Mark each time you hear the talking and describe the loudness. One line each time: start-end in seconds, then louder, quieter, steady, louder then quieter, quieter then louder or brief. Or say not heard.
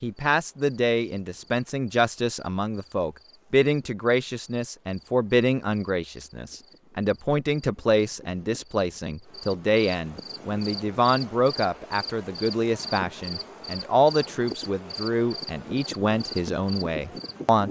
0.0-17.6 steady.